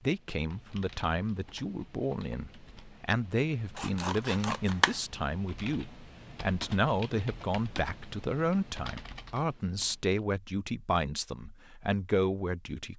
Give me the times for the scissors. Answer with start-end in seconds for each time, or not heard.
3.8-5.0.